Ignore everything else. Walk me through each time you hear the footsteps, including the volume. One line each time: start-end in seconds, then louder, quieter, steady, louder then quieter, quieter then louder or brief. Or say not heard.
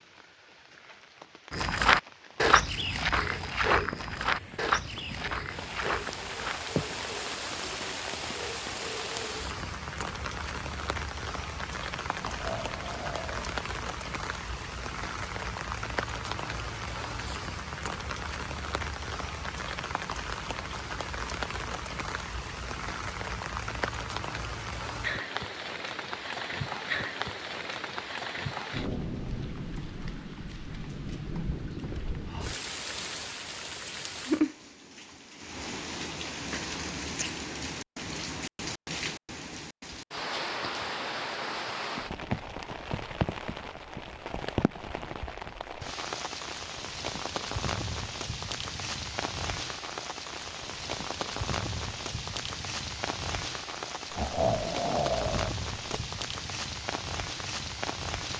1.5-7.0 quieter.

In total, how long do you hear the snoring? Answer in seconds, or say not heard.
3 s.